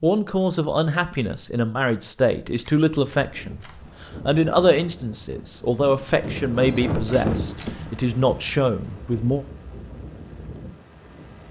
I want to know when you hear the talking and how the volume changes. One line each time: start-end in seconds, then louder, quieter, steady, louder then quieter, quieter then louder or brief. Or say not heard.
0.0-9.4 steady.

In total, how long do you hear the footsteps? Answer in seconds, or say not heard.
not heard.